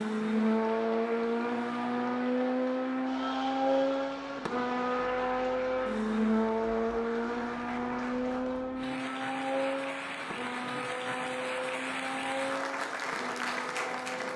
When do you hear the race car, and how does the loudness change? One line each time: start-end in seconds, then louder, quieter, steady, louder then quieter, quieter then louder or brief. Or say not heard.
0.0-14.3 quieter.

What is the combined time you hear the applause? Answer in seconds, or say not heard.
14 s.